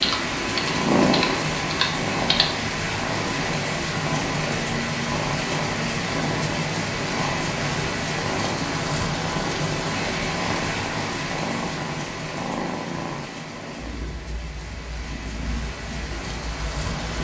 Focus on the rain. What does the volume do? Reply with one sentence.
The volume of the rain goes down.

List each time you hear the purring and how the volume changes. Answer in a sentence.
You can hear the purring from 0.0 to 17.2 s, getting quieter.